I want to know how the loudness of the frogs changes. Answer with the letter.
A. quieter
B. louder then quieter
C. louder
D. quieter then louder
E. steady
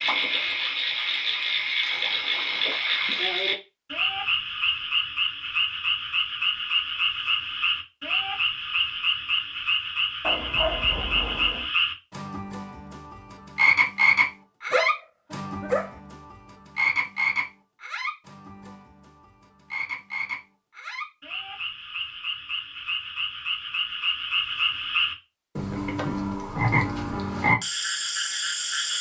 D.